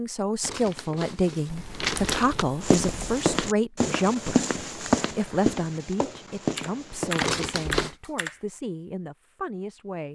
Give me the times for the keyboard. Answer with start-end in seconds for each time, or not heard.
1.4-3.2, 6.5-8.4.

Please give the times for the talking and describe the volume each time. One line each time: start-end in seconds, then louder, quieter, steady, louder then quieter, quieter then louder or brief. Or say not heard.
0.0-10.1 quieter.